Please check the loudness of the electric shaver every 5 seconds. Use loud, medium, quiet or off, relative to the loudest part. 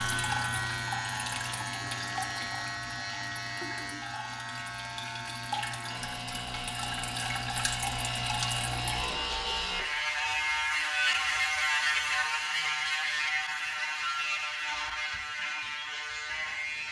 medium, medium, loud, medium.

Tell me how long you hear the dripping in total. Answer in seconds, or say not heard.
9 s.